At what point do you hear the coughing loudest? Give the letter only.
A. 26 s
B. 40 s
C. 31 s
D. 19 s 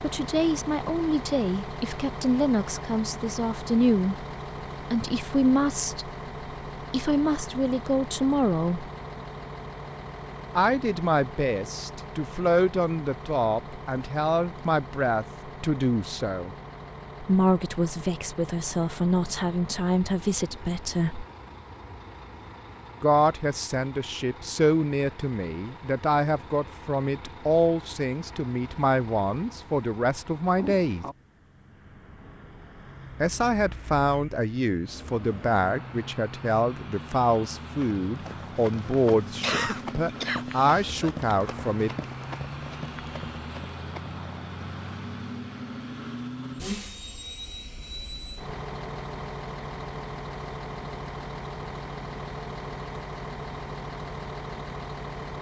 B.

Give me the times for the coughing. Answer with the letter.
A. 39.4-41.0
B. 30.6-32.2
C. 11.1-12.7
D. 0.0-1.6
A.